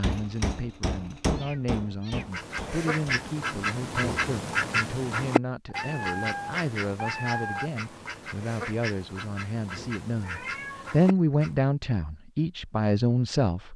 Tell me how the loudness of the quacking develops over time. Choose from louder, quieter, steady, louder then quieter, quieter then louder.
quieter.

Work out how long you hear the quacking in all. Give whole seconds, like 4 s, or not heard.
9 s.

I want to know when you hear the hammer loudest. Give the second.
1 s.